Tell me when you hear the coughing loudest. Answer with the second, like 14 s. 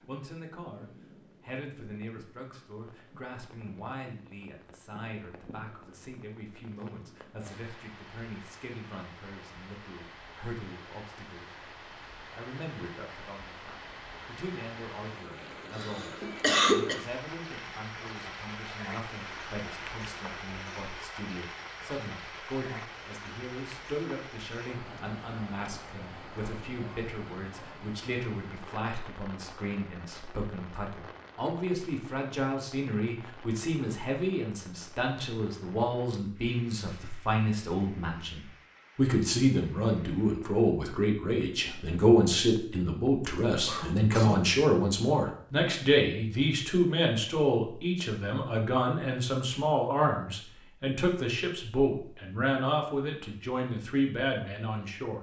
17 s.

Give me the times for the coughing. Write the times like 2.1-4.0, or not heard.
15.8-17.0, 43.2-44.5.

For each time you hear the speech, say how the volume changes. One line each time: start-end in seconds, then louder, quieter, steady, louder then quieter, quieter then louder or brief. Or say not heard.
0.1-55.1 louder.